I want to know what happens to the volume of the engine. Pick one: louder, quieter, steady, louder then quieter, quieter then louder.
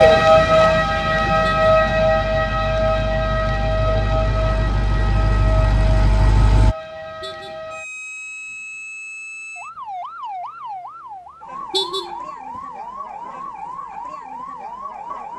louder.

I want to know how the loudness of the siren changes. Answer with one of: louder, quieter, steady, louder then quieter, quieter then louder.
quieter.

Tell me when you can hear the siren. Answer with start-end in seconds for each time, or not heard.
0.0-15.3.